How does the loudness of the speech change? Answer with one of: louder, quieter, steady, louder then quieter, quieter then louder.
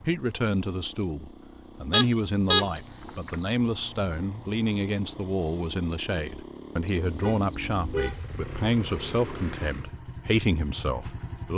steady.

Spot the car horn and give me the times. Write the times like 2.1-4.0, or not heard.
1.9-3.4, 7.0-8.5.